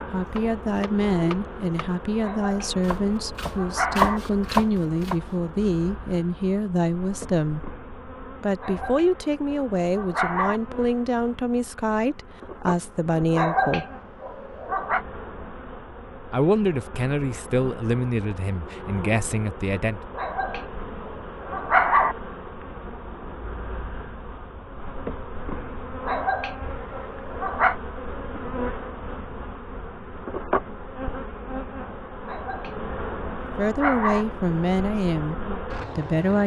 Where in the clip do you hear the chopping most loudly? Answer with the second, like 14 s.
4 s.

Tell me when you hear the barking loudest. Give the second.
22 s.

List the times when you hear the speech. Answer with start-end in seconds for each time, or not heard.
0.1-7.7, 8.4-13.8, 16.3-20.0, 33.4-36.4.